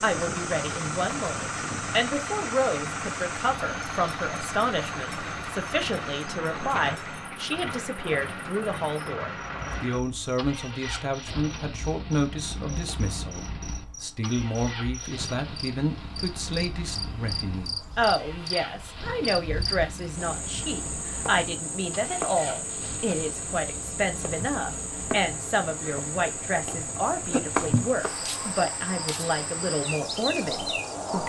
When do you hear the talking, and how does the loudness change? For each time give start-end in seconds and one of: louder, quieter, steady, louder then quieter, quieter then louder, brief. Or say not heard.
0.0-31.2 steady.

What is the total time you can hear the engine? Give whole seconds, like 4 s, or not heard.
31 s.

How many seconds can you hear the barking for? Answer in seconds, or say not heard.
not heard.